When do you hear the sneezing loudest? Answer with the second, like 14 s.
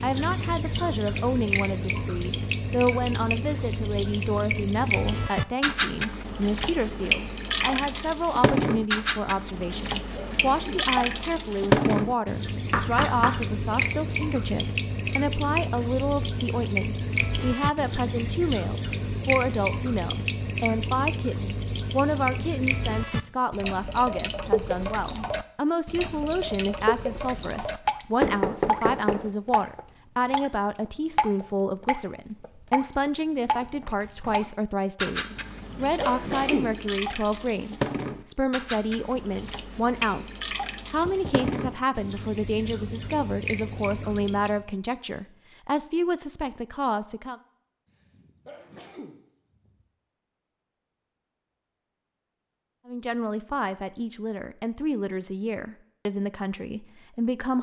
36 s.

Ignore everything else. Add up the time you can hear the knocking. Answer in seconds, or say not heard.
3 s.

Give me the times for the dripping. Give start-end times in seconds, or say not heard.
0.0-44.6.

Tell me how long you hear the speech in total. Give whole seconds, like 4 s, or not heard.
52 s.